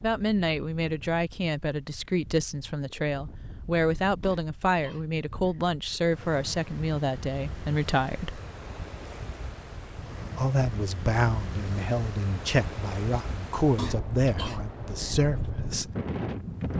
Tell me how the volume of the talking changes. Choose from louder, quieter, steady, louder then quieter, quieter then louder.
steady.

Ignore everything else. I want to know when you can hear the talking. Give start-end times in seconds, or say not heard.
0.0-8.4, 10.3-15.9.